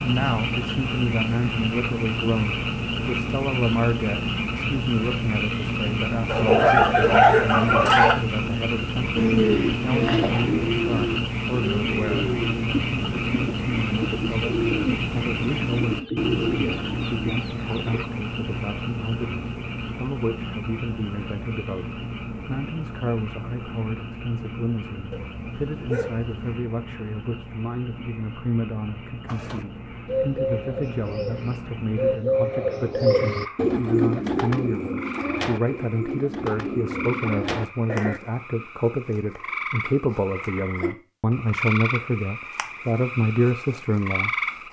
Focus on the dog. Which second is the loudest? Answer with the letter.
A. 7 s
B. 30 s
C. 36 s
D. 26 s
A.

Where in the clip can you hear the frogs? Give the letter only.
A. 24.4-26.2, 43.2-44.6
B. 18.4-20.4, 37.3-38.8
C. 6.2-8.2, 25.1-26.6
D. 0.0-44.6
D.